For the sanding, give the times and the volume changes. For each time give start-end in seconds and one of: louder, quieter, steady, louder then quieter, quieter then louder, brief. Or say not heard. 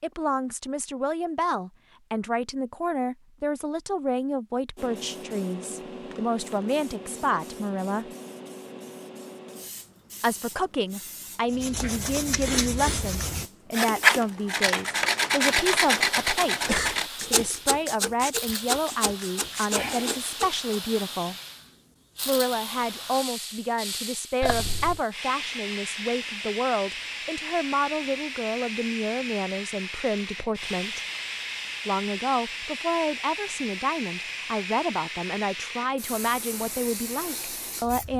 11.5-20.6 louder then quieter.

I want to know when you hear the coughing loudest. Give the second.
17 s.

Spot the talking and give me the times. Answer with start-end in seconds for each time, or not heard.
0.0-8.1, 10.2-21.4, 22.2-31.0, 31.9-38.1.